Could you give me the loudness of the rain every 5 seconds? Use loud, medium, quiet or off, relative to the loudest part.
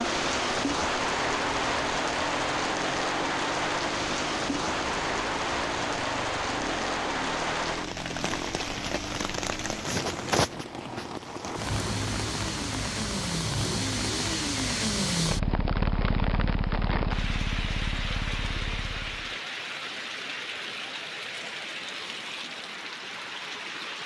loud, loud, medium, medium, medium.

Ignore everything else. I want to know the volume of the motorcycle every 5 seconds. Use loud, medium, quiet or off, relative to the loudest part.
medium, medium, loud, loud, off.